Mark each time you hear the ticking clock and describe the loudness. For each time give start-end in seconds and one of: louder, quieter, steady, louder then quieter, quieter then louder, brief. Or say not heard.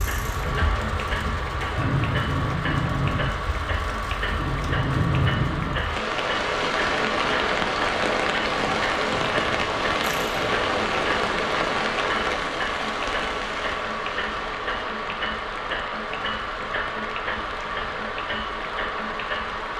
0.0-19.7 steady.